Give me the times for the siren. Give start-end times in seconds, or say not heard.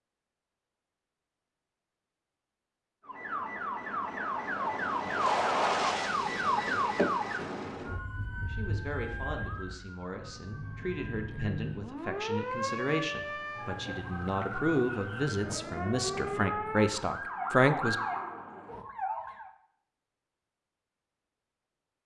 3.0-19.5.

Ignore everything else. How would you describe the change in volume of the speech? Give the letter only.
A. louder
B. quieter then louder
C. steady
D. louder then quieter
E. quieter
A.